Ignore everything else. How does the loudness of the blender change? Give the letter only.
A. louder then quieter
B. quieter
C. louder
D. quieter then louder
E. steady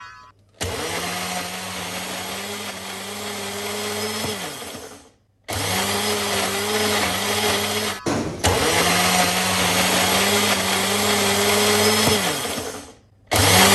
C.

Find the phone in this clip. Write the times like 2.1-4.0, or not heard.
8.1-8.8.